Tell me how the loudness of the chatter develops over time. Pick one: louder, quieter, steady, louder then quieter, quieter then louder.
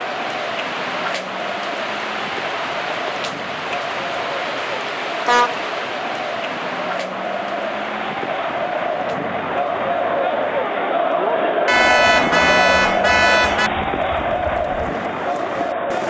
louder.